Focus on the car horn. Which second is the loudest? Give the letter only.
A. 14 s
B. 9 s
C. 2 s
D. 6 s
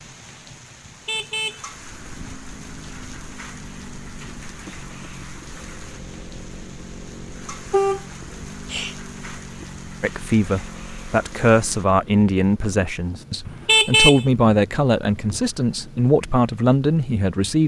A.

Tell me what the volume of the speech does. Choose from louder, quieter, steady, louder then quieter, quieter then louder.
steady.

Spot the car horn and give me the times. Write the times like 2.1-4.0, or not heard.
0.8-2.4, 7.7-8.9, 13.4-14.2.